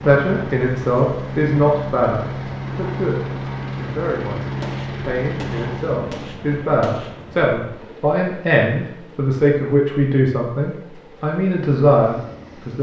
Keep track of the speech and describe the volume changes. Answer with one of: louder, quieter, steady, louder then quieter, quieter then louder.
quieter then louder.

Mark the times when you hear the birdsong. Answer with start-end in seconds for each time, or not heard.
not heard.